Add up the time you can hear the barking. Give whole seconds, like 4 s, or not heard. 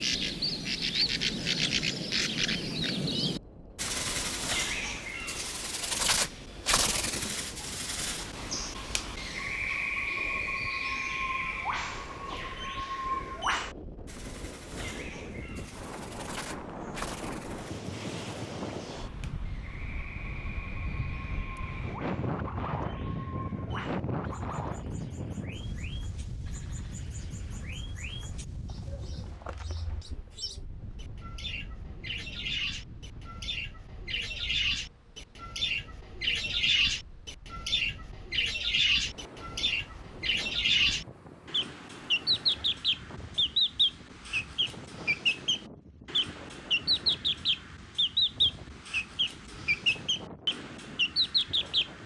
not heard.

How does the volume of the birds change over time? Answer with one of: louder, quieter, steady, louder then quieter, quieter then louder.
quieter then louder.